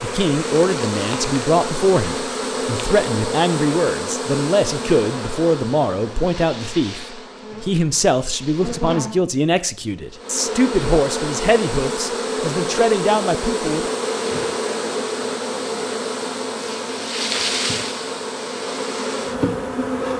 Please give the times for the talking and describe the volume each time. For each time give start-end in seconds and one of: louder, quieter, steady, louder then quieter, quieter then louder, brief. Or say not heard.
0.0-13.9 steady.